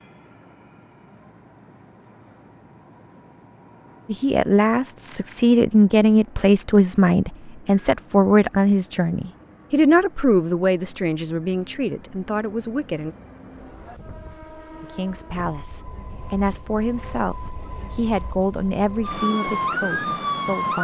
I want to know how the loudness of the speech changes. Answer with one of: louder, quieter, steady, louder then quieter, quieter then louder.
quieter.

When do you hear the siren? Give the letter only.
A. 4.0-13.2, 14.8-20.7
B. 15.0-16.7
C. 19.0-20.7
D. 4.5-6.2
C.